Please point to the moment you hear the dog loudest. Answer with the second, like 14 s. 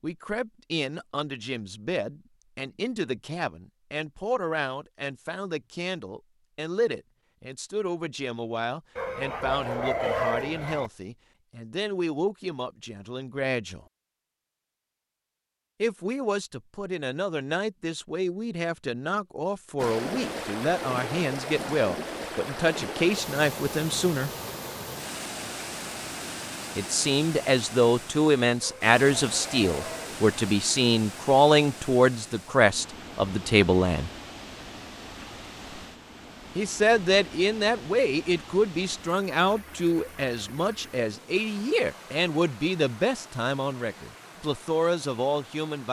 10 s.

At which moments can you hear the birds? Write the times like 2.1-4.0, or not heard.
not heard.